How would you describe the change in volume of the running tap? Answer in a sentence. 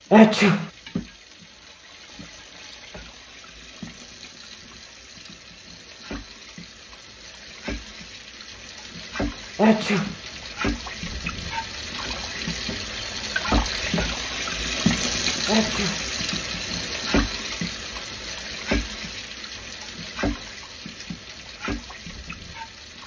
The loudness of the running tap goes up, then down.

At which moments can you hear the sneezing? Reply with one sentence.
The sneezing can be heard from 0.1 to 0.7 s, from 9.6 to 10.2 s and from 15.4 to 16.1 s.